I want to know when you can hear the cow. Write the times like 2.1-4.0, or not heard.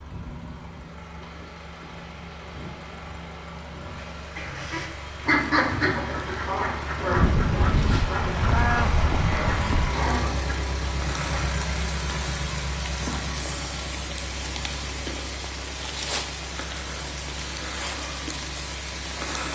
7.2-9.9.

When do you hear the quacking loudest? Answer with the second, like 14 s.
5 s.